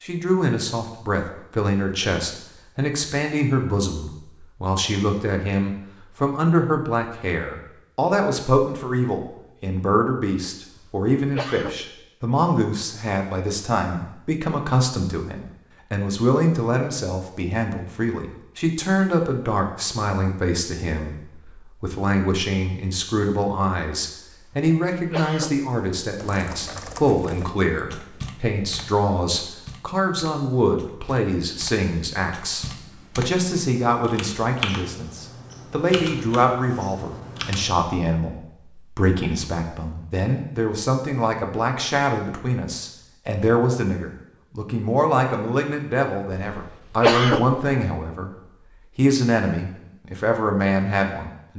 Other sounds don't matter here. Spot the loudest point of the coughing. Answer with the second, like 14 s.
47 s.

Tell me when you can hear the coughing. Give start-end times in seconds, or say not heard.
10.7-12.1, 24.4-25.7, 46.3-47.8.